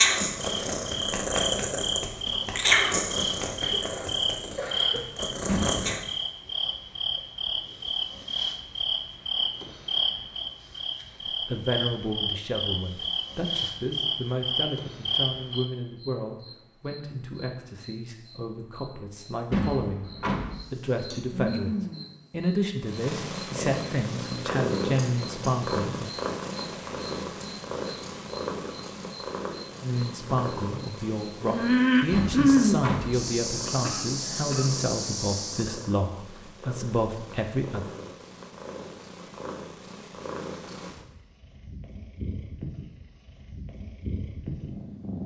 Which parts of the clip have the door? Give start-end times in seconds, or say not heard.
5.5-6.1, 19.5-20.6, 32.1-33.1.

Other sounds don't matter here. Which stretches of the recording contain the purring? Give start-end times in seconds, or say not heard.
0.0-6.0, 22.8-45.2.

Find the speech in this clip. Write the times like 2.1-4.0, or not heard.
11.4-20.1, 20.7-26.1, 29.8-37.9.